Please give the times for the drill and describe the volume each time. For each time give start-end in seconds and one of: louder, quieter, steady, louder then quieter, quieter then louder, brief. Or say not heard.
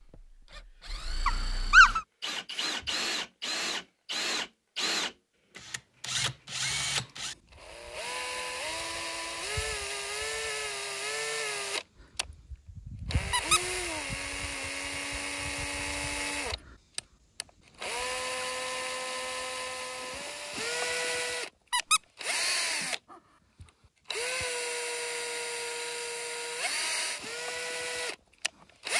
0.0-28.9 steady.